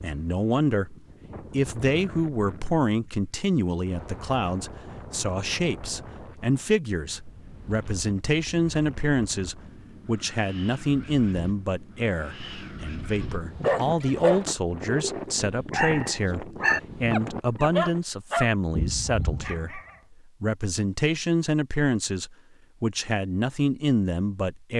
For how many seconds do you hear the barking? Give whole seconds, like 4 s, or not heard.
6 s.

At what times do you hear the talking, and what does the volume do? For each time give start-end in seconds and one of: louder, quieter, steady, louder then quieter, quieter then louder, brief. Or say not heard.
0.0-24.7 steady.